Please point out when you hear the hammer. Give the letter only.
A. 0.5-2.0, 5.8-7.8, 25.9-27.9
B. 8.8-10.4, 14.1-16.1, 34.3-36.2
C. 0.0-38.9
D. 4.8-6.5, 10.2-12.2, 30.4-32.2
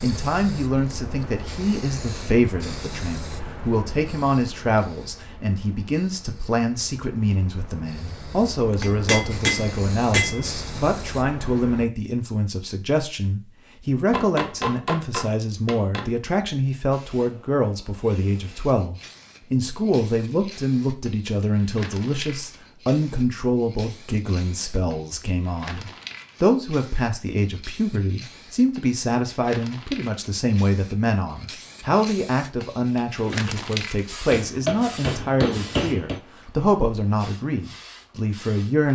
B.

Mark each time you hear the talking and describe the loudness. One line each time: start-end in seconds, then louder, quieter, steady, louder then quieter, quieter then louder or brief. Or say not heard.
0.0-38.9 steady.